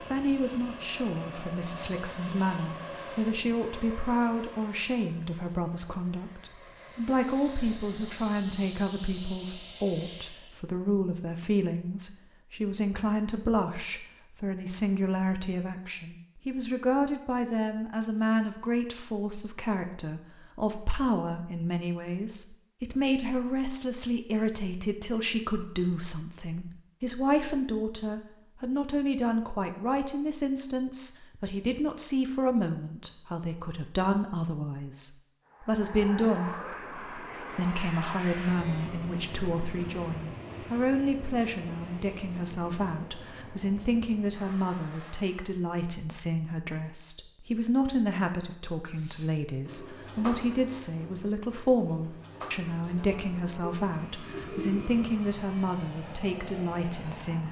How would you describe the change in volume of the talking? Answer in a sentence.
The loudness of the talking stays about the same.